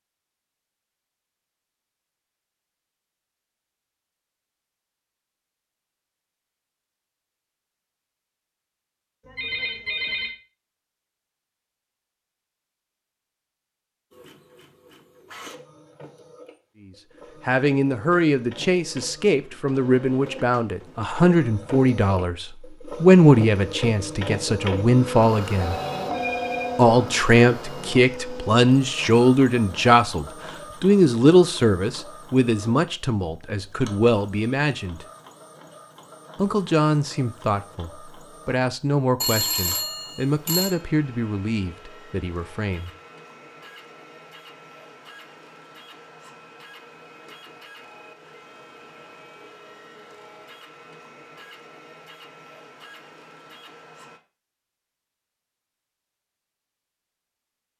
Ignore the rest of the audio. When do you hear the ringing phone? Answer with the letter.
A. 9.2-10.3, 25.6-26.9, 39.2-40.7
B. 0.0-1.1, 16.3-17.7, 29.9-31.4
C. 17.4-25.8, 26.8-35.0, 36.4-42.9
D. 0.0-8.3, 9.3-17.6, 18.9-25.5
A.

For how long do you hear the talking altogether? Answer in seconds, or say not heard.
23 s.